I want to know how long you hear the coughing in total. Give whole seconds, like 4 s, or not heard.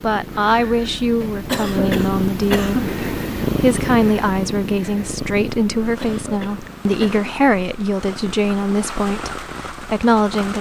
3 s.